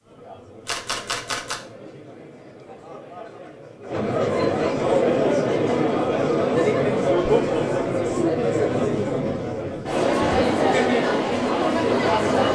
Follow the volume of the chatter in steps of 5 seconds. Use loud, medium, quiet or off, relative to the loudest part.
medium, loud, loud.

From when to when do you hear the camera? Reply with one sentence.
You can hear the camera from 0.7 to 1.6 s.